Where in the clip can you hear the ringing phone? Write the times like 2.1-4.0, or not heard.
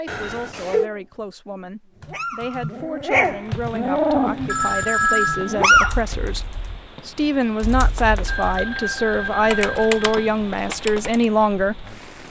0.1-0.9, 4.5-5.6, 8.2-10.1.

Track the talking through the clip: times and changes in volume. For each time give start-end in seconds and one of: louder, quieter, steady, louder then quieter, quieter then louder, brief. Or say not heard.
0.0-12.2 louder.